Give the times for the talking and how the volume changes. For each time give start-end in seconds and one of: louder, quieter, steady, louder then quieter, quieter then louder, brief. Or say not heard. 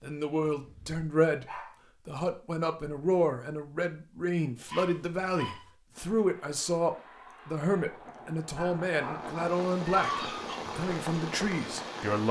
0.0-12.2 steady.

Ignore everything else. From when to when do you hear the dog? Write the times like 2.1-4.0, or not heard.
0.5-1.8, 4.7-5.7, 8.6-10.6.